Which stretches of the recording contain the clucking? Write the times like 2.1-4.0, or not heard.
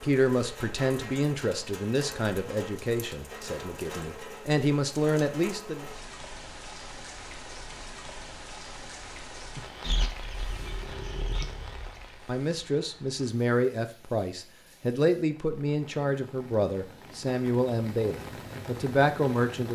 9.8-11.4.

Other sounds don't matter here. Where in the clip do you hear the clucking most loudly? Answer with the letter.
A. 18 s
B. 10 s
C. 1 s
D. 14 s
B.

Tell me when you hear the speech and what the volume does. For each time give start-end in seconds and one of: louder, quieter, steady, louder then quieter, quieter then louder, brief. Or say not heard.
0.0-5.9 quieter then louder
12.2-19.7 steady.